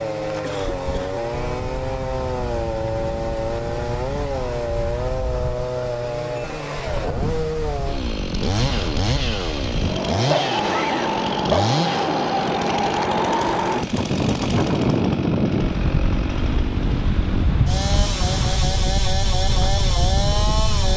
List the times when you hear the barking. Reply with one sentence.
You can hear the barking from 10.2 to 11.7 s.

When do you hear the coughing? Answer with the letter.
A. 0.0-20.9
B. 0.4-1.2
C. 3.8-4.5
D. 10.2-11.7
B.